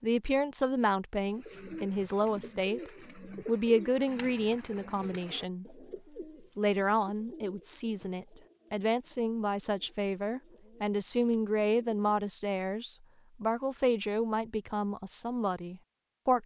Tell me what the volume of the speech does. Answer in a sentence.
The volume of the speech stays about the same.